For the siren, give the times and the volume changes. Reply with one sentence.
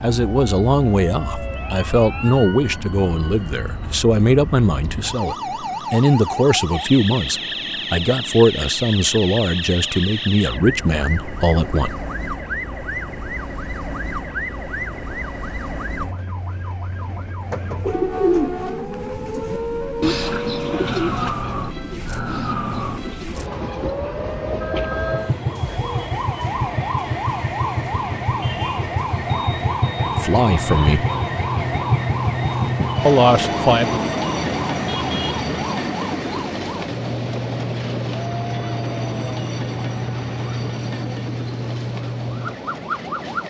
The siren can be heard from 0.0 to 43.4 s, at a steady volume.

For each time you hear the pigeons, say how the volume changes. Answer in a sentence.
You can hear the pigeons from 17.6 to 24.0 s, getting quieter.